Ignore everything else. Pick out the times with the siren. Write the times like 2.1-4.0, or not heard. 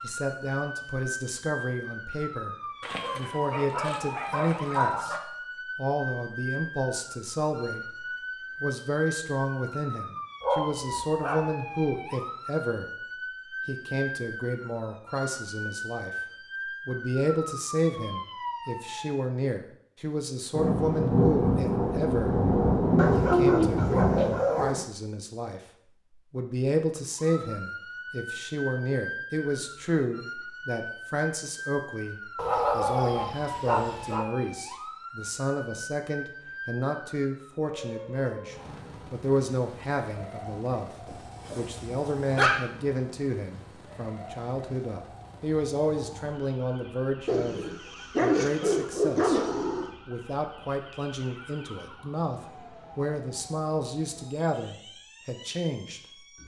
0.0-19.2, 27.1-56.4.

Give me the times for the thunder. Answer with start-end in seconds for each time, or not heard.
20.5-24.4.